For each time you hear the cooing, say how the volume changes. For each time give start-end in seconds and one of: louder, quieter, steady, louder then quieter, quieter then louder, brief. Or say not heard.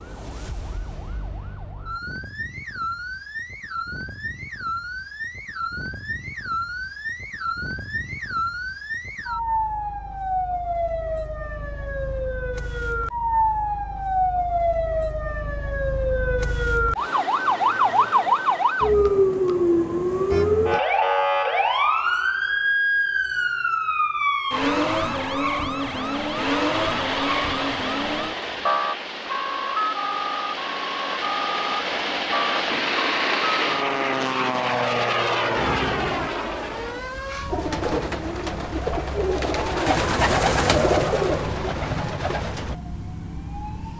37.5-42.8 louder then quieter.